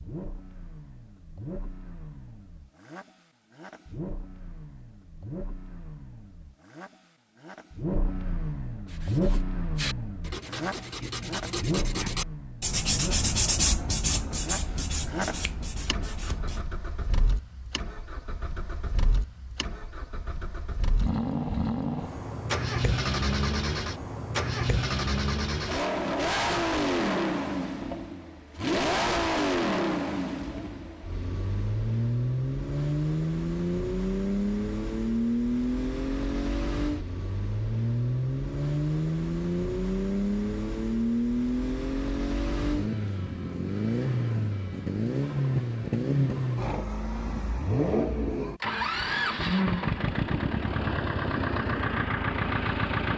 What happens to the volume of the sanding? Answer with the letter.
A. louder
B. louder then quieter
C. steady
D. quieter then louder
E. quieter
B.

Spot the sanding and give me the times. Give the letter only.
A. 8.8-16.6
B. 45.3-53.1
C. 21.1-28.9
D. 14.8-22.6
A.